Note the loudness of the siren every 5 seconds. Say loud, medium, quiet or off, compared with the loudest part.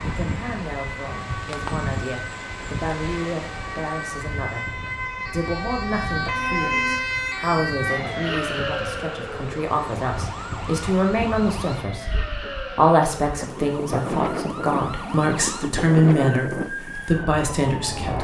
medium, loud, medium, medium.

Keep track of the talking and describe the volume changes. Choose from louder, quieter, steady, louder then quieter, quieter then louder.
louder.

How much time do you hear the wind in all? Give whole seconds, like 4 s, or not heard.
18 s.